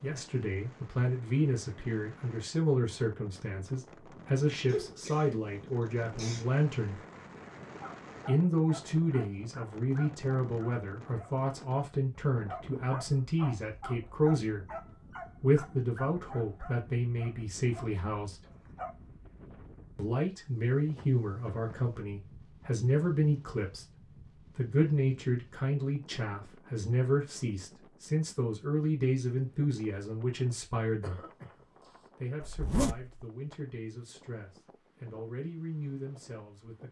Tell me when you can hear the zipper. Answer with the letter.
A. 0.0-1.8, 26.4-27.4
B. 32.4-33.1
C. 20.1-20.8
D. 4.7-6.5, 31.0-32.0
B.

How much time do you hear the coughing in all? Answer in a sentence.
The coughing can be heard for 3 seconds in total.